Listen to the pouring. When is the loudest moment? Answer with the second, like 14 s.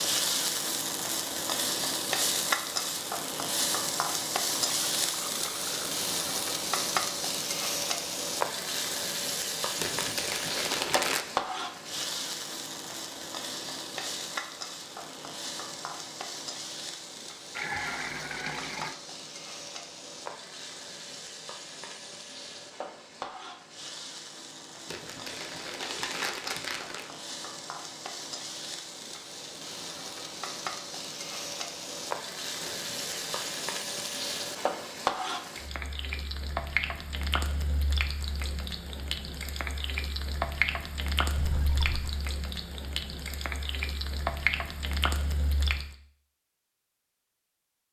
18 s.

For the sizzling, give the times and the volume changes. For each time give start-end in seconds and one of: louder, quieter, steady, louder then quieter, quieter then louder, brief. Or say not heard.
0.0-46.0 quieter then louder.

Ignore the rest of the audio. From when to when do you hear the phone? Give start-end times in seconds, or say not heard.
not heard.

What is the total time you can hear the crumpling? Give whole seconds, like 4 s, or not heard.
5 s.